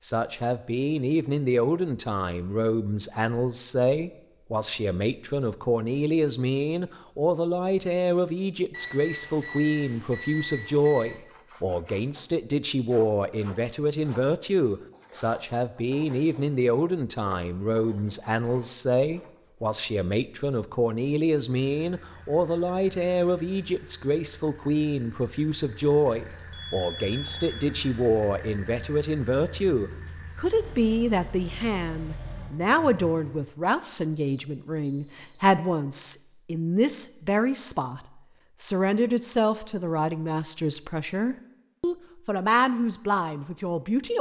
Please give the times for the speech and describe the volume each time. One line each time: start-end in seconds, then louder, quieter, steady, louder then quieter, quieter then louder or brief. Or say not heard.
0.0-44.1 steady.